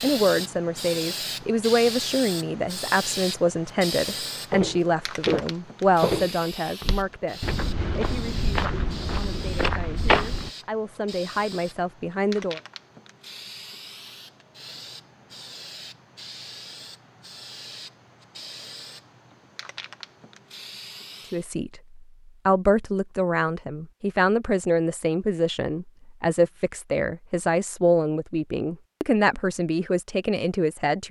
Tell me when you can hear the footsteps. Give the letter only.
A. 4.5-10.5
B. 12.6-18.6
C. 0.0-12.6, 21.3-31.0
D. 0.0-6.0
A.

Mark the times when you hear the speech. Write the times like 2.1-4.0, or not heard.
0.0-12.6, 21.3-31.0.